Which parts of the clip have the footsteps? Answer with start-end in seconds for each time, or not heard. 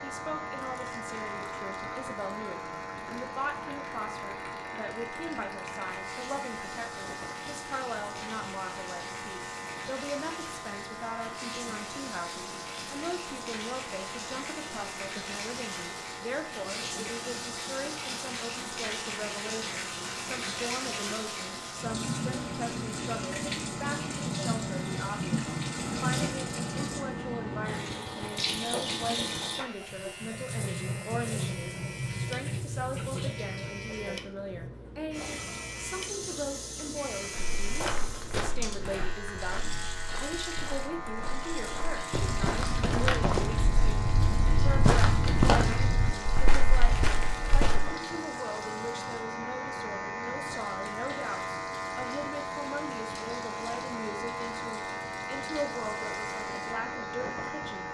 37.4-48.0.